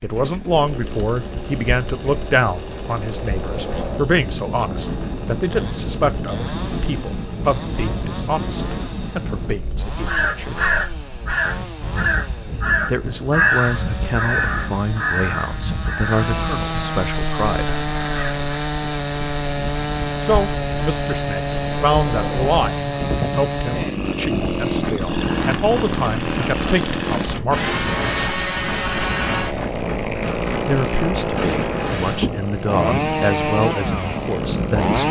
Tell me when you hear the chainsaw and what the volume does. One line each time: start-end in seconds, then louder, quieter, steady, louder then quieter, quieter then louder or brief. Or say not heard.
0.0-35.0 louder.